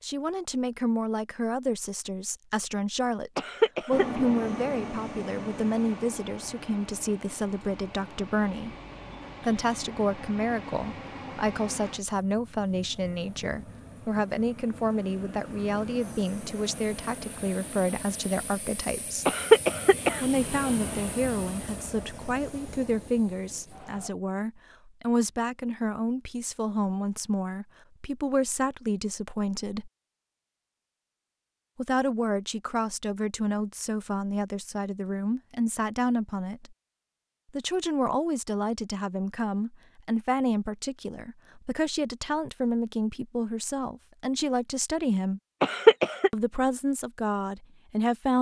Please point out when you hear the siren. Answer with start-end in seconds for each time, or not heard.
not heard.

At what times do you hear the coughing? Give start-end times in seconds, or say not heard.
3.4-4.2, 19.2-20.2, 45.6-46.3.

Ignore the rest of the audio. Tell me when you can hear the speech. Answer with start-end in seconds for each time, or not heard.
0.0-8.8, 9.4-19.3, 20.2-29.9, 31.8-36.8, 37.5-45.4, 46.3-48.3.